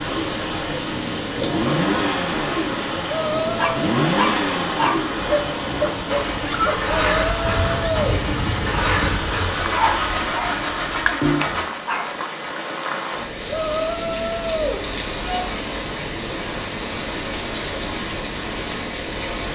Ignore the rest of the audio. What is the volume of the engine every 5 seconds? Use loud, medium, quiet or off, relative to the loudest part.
loud, loud, loud, off.